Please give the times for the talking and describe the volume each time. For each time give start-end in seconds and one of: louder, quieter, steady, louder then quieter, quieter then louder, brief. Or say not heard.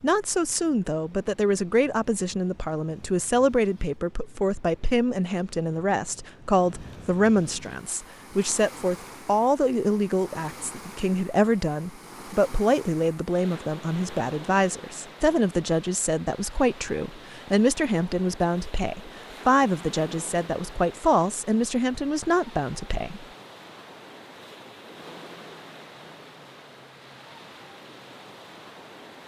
0.0-23.2 steady.